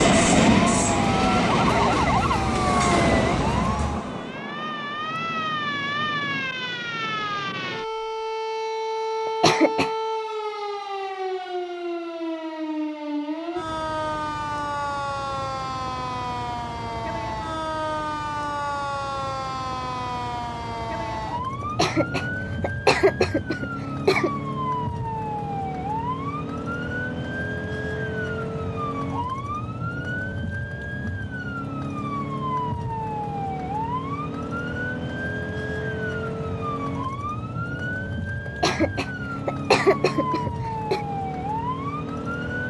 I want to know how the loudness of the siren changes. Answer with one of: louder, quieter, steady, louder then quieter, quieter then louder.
steady.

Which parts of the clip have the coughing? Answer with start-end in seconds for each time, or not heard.
9.2-9.9, 21.6-24.3, 38.5-41.0.